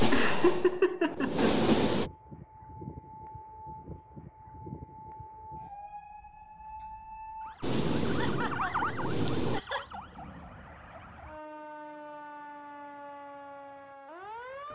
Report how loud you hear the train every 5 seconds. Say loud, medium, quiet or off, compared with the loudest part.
loud, loud, off.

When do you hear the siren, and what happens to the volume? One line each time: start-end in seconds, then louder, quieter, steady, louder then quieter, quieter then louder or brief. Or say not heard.
1.9-14.6 louder then quieter.